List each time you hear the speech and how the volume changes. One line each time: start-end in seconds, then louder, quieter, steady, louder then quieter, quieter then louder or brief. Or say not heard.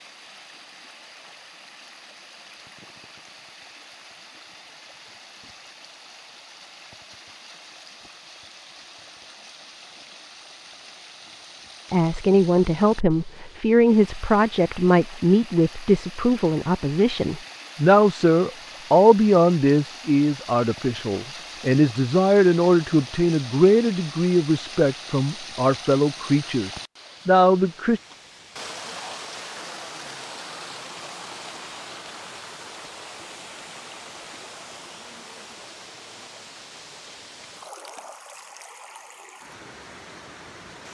11.9-28.0 steady.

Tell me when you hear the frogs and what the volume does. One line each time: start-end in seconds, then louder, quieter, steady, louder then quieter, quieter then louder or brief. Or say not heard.
not heard.